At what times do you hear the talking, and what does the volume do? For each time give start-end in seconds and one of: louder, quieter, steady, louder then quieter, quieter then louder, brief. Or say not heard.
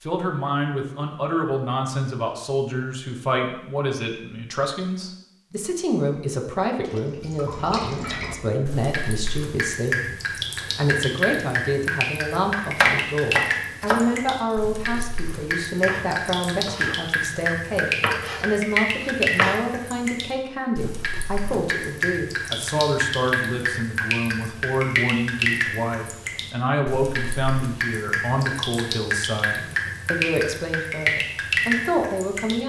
0.0-32.6 steady.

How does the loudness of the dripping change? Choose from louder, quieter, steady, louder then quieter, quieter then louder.
steady.